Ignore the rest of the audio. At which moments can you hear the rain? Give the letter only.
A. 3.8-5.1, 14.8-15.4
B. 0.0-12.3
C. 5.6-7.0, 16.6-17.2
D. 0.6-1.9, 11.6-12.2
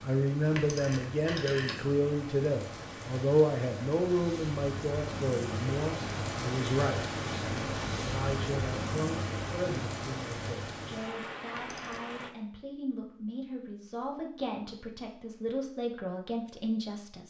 B.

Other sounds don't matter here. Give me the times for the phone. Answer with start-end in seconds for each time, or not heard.
0.6-1.9, 11.6-12.2.